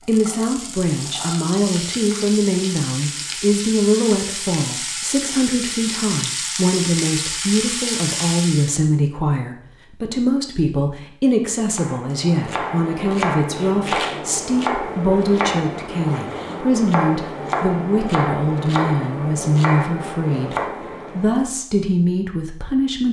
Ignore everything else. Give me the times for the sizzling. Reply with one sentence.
You can hear the sizzling from 0.0 to 8.8 s.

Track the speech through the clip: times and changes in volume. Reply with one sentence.
You can hear the speech from 0.0 to 23.0 s, at a steady volume.